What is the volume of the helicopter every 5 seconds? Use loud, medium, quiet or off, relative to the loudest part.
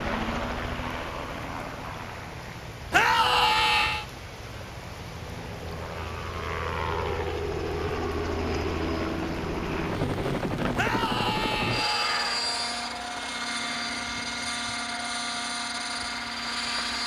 medium, loud, loud, loud.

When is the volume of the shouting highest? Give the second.
3 s.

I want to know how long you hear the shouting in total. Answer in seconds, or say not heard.
3 s.